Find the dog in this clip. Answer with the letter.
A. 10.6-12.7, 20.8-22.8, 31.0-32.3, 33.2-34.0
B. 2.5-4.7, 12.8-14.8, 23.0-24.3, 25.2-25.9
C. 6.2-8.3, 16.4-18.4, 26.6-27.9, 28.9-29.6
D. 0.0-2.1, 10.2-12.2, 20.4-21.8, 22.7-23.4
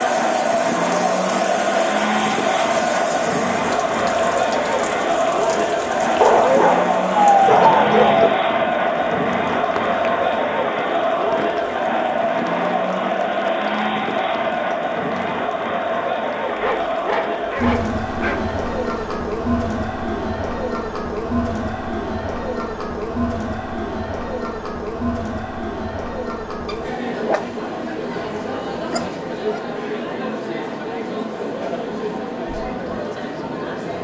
C.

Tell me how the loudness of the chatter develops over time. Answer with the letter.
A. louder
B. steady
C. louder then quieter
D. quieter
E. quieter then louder
D.